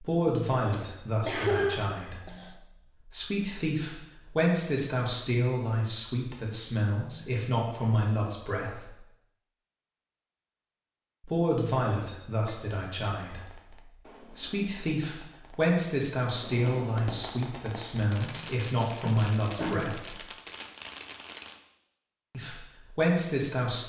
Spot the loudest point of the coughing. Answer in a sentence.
The loudest moment of the coughing is at 2 seconds.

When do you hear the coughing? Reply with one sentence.
The coughing can be heard from 0.2 to 2.5 s and from 19.0 to 20.0 s.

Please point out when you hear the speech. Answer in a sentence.
The speech can be heard from 0.0 to 8.9 s, from 11.2 to 13.6 s, from 14.3 to 20.1 s and from 22.3 to 23.8 s.